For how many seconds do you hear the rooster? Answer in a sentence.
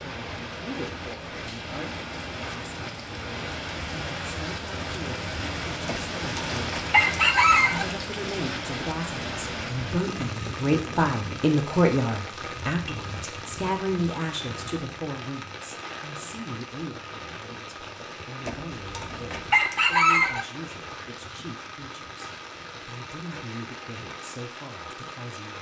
The rooster can be heard for 4 seconds in total.